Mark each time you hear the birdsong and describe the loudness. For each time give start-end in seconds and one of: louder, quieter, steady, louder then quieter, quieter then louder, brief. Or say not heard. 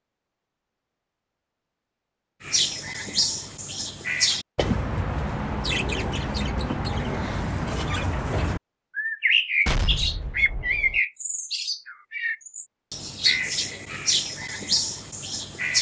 2.4-15.7 steady.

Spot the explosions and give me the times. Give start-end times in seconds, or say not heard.
9.7-11.0.